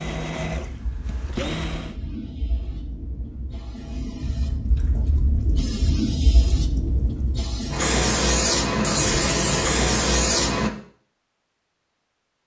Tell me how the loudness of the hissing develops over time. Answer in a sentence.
The volume of the hissing goes up.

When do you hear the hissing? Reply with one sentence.
You can hear the hissing from 0.1 to 10.7 s.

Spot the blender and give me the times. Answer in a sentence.
The blender can be heard from 0.0 to 1.9 s.